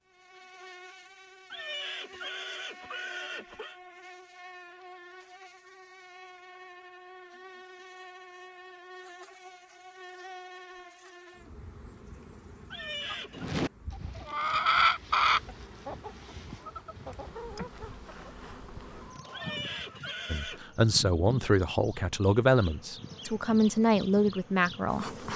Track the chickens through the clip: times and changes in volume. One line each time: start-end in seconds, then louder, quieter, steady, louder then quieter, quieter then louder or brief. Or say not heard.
13.1-20.8 quieter.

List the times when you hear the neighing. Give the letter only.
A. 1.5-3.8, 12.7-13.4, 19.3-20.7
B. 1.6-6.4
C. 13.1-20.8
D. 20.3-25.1
A.